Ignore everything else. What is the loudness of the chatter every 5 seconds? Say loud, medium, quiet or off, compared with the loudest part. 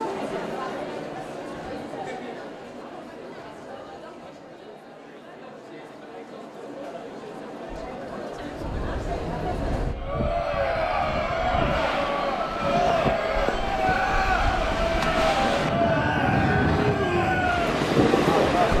medium, medium, loud, loud.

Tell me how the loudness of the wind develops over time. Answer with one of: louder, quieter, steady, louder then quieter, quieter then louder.
louder.